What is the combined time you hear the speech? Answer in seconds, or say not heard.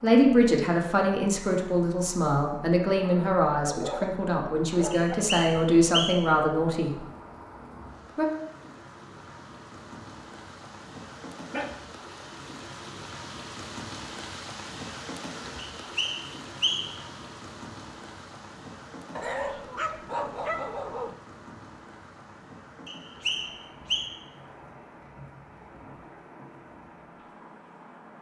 7 s.